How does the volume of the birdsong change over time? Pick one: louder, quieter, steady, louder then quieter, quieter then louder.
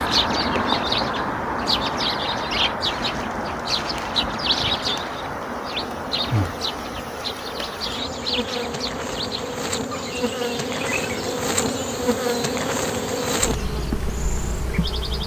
quieter.